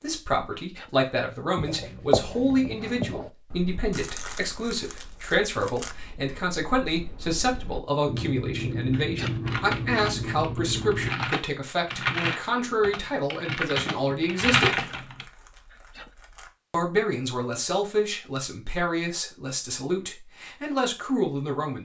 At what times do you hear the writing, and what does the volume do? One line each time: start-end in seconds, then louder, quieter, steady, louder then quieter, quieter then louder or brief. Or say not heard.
1.6-11.1 quieter then louder.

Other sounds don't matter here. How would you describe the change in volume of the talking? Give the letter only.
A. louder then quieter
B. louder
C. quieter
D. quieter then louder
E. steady
E.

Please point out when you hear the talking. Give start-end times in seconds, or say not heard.
0.0-14.8, 16.7-21.8.